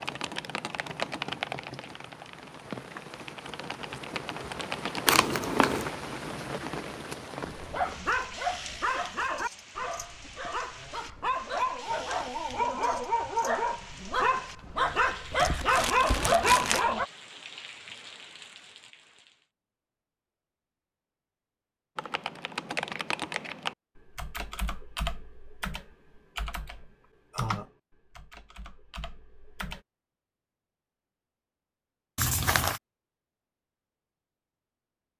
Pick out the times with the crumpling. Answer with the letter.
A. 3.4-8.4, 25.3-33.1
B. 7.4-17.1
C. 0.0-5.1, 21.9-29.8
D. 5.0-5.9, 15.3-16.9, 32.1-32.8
D.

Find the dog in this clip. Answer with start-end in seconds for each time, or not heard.
7.4-17.1.